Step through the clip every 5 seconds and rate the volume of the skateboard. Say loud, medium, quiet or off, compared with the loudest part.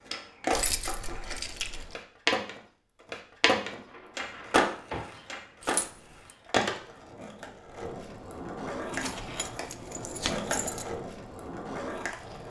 loud, medium, medium.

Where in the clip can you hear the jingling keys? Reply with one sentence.
You can hear the jingling keys from 0.5 to 1.9 s, from 5.6 to 6.3 s and from 8.9 to 10.8 s.